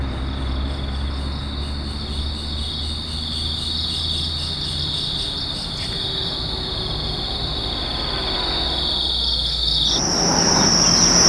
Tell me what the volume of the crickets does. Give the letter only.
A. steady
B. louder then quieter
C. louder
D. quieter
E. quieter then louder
C.